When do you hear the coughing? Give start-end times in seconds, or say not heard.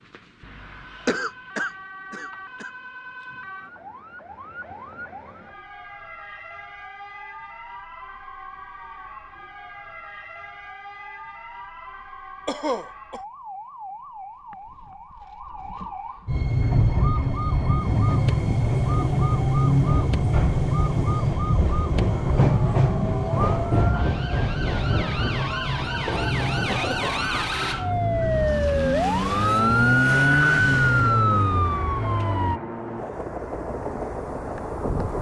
1.1-2.7, 12.4-13.2, 26.1-27.2.